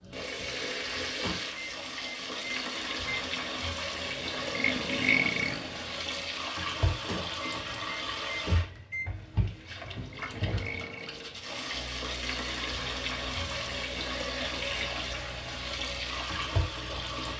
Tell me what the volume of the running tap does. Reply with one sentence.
The loudness of the running tap stays about the same.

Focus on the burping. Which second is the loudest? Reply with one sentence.
The volume of the burping peaks at 5 seconds.